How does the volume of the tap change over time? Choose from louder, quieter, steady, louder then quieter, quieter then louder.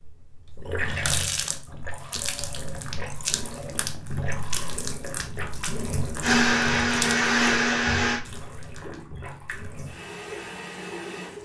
quieter.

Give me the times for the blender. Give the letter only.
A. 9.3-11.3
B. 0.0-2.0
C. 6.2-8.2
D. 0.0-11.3
C.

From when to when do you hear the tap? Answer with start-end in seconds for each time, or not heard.
0.0-11.3.